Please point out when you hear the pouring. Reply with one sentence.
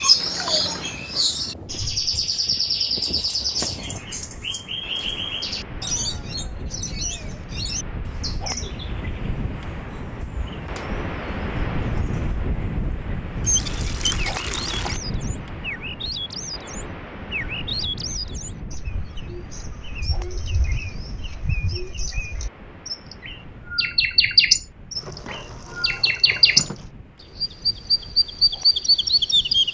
The pouring can be heard from 0.2 to 1.0 s, from 13.4 to 15.0 s and from 24.9 to 26.9 s.